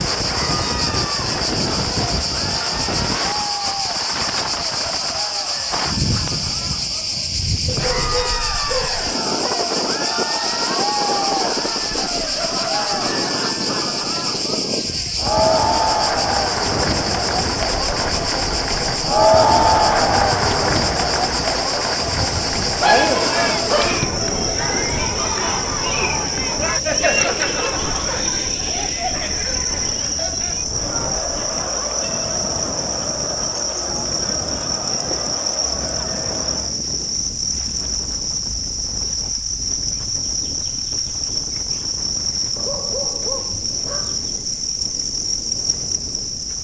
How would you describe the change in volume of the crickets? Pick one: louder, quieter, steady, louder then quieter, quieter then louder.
steady.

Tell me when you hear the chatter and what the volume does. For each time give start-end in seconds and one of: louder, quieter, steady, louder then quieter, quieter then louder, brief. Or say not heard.
0.1-36.8 louder then quieter.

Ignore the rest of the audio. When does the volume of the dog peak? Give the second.
23 s.